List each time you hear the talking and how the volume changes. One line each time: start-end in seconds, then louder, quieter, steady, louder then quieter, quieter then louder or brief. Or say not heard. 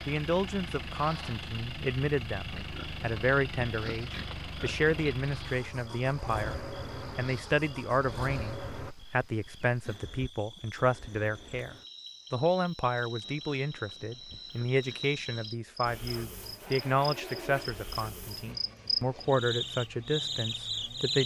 0.1-21.2 steady.